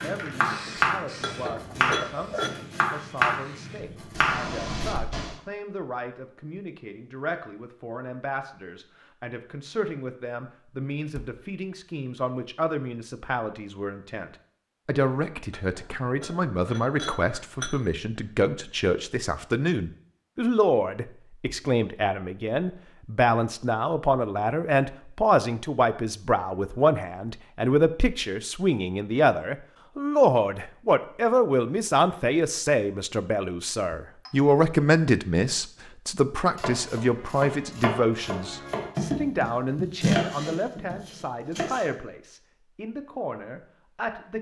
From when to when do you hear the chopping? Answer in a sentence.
You can hear the chopping from 0.0 to 5.0 s and from 36.5 to 41.9 s.